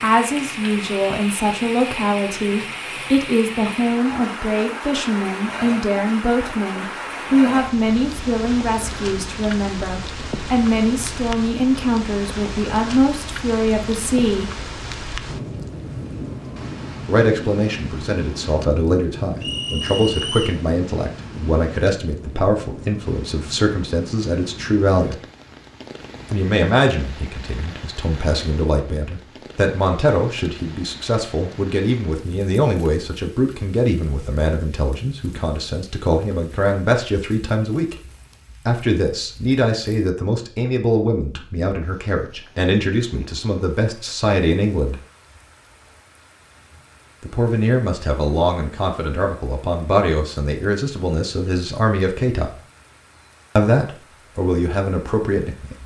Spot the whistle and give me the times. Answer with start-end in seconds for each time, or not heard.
19.4-20.6.